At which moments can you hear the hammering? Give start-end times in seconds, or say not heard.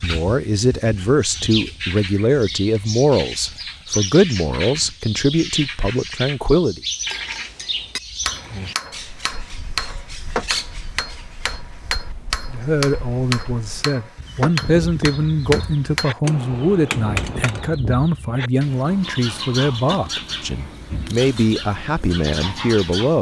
7.0-17.8.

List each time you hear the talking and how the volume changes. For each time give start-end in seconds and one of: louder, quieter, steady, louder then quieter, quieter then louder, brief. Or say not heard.
0.0-6.8 steady
12.5-23.1 steady.